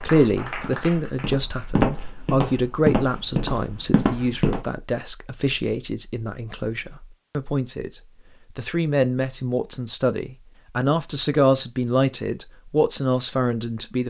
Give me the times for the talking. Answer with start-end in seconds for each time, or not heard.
0.0-14.0.